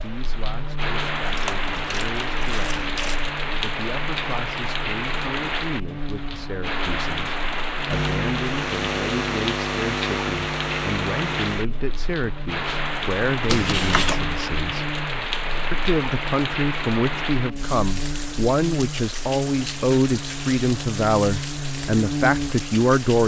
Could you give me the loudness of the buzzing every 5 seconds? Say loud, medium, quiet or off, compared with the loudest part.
medium, loud, loud, medium, loud.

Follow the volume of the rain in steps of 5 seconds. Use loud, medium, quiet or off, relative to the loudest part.
loud, loud, loud, loud, medium.